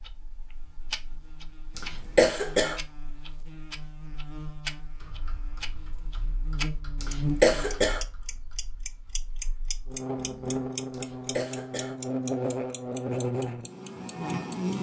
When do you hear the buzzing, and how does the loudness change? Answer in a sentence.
You can hear the buzzing from 0.0 to 14.7 s, getting louder.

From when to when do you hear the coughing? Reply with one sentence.
The coughing can be heard from 1.8 to 2.8 s, from 7.0 to 8.0 s and from 10.9 to 11.9 s.